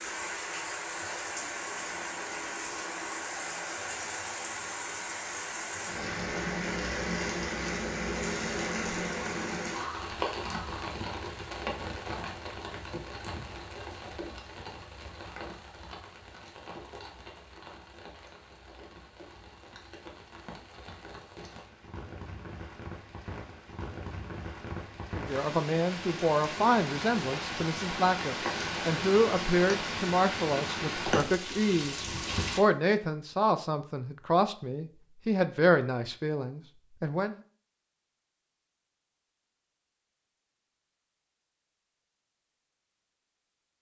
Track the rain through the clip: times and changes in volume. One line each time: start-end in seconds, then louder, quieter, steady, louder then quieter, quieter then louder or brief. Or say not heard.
0.0-32.6 quieter then louder.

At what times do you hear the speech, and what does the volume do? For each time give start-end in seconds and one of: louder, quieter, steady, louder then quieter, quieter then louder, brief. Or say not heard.
25.1-37.4 steady.